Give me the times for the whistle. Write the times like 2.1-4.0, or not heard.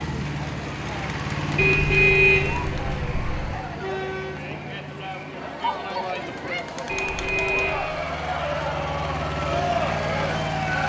not heard.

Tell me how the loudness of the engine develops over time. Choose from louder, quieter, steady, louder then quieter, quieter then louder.
quieter then louder.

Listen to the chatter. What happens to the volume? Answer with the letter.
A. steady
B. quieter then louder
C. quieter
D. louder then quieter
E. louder
E.